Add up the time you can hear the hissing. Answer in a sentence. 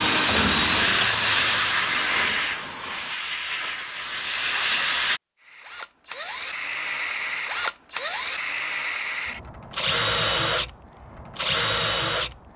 You can hear the hissing for 5 seconds altogether.